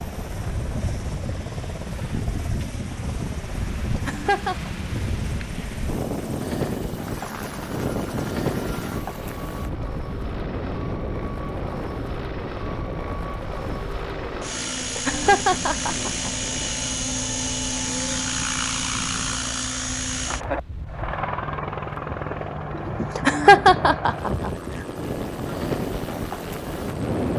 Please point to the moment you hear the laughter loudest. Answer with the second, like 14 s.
24 s.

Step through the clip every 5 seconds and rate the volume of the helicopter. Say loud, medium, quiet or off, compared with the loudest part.
medium, medium, medium, loud, loud, medium.